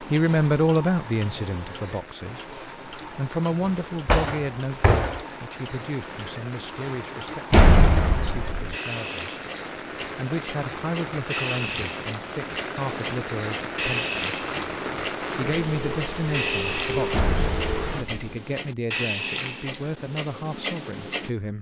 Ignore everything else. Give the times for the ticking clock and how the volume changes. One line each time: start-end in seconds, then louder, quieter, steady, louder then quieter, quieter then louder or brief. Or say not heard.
0.0-21.3 louder.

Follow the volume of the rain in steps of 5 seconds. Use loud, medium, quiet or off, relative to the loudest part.
quiet, medium, loud, loud, off.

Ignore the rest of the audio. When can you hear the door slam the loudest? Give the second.
8 s.